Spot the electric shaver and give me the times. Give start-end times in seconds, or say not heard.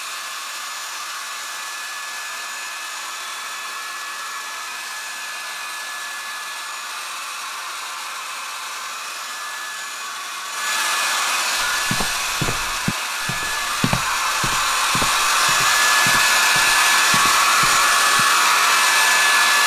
not heard.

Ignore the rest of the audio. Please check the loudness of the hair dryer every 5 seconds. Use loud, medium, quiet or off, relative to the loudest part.
quiet, quiet, medium, loud.